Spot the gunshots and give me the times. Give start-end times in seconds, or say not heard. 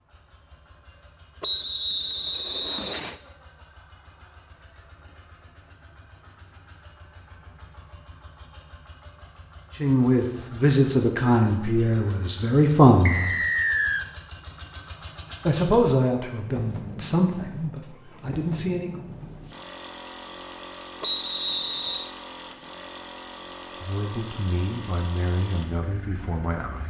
not heard.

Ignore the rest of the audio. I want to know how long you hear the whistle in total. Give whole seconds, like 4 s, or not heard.
4 s.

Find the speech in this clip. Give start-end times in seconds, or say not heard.
9.8-13.3, 15.4-19.0, 23.8-26.8.